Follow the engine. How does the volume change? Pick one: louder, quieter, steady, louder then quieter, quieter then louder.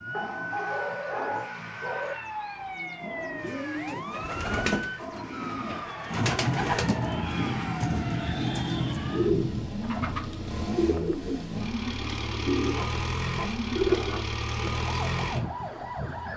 louder.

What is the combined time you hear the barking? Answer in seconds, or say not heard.
3 s.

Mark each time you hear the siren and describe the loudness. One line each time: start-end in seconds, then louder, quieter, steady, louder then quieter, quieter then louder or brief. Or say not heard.
0.0-16.3 steady.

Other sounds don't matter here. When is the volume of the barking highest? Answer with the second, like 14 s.
1 s.